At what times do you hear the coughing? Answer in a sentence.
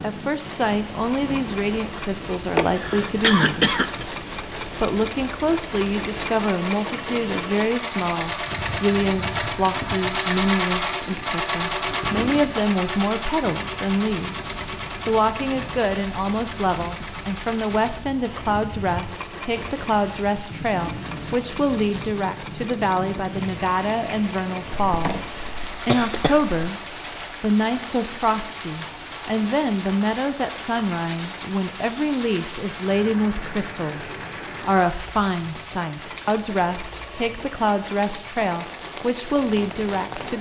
You can hear the coughing from 2.5 to 4.0 s and from 24.9 to 26.6 s.